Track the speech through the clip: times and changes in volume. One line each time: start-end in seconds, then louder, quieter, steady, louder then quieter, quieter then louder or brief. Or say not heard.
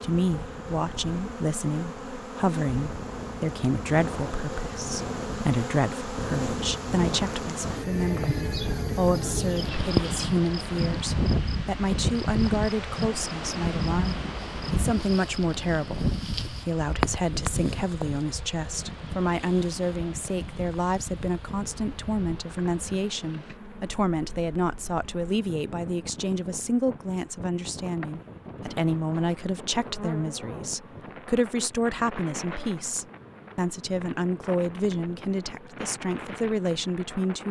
0.0-37.4 steady.